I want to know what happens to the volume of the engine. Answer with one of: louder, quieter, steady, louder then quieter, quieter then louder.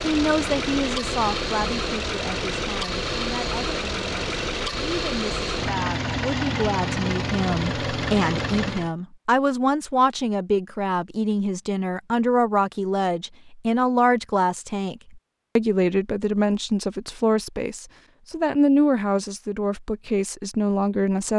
steady.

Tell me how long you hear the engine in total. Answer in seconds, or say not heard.
9 s.